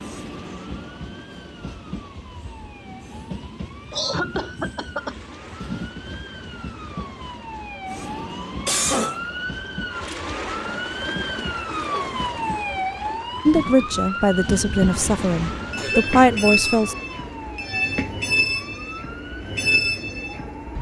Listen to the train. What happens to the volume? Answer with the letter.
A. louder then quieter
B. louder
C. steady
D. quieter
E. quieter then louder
B.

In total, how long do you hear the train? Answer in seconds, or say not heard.
21 s.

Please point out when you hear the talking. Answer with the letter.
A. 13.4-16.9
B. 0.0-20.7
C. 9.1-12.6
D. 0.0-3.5
A.